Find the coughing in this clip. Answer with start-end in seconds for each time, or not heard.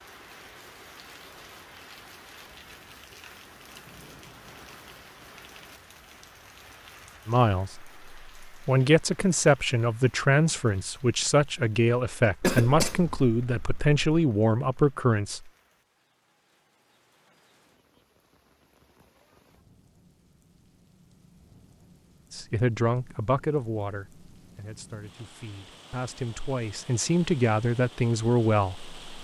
12.4-14.2.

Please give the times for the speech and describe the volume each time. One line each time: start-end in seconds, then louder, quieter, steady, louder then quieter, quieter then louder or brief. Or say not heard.
7.2-15.5 steady
22.3-28.9 quieter then louder.